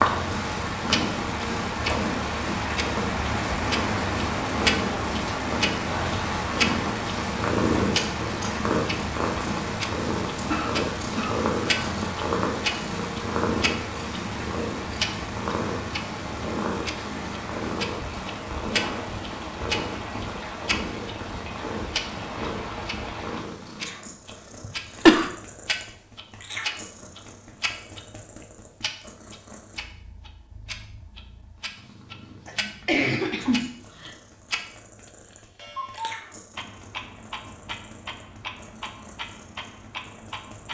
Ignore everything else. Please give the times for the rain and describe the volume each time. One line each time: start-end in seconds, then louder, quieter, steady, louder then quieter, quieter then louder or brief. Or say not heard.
0.0-23.5 quieter.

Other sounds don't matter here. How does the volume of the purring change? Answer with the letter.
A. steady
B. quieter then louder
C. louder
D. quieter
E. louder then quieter
D.